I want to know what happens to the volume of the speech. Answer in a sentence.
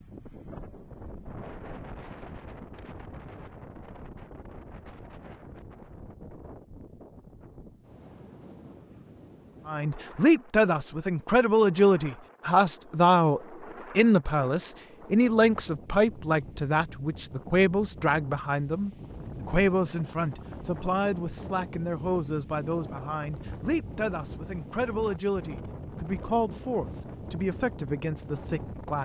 The volume of the speech goes down.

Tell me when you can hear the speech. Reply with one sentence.
You can hear the speech from 9.7 to 29.0 s.